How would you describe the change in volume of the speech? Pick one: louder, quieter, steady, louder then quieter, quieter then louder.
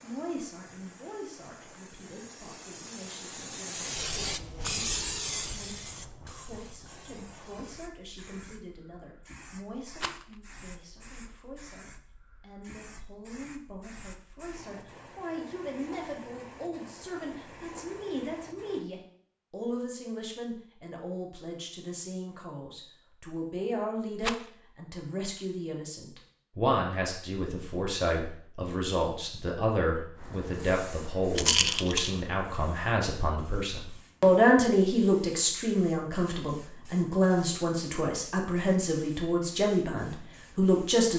louder.